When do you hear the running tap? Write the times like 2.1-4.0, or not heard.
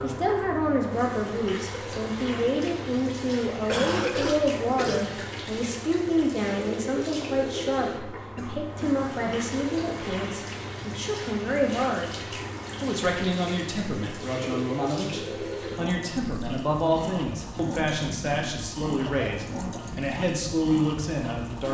0.0-21.6.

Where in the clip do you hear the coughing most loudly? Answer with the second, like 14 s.
4 s.